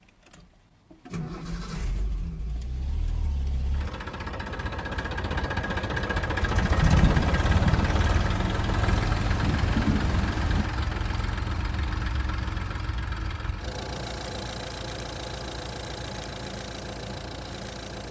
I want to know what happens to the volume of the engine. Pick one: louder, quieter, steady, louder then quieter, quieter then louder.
louder then quieter.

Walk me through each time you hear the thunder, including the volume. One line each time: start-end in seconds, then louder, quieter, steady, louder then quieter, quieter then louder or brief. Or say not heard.
6.6-10.7 quieter then louder.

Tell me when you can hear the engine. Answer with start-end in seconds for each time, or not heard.
0.1-18.0.